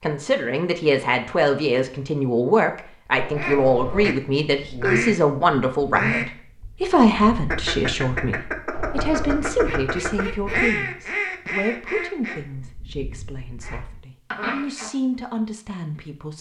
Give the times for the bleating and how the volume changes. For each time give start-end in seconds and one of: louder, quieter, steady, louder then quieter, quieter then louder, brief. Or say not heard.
not heard.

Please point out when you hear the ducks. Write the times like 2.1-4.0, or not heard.
3.4-14.9.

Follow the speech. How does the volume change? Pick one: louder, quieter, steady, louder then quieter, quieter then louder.
quieter.